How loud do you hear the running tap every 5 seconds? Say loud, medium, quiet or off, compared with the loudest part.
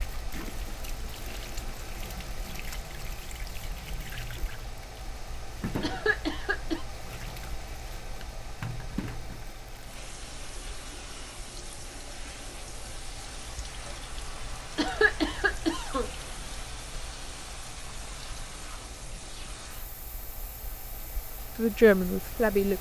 loud, loud, loud, loud, quiet.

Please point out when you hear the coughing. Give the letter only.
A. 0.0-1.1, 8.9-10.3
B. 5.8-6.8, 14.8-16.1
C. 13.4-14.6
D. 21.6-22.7
B.